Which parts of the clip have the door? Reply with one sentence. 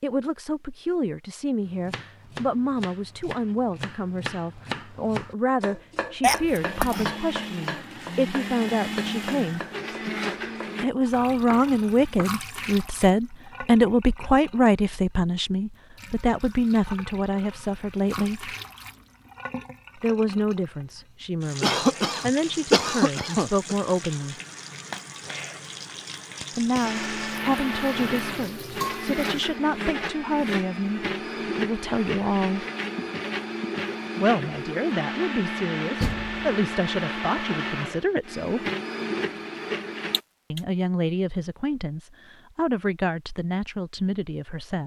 You can hear the door from 36.0 to 36.5 s.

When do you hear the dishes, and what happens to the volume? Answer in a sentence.
You can't hear the dishes here.